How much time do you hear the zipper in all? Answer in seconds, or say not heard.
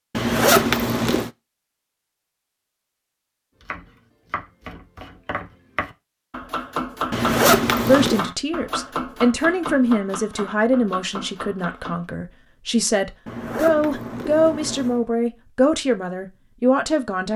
4 s.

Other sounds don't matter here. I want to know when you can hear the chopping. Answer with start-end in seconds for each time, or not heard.
3.6-12.1.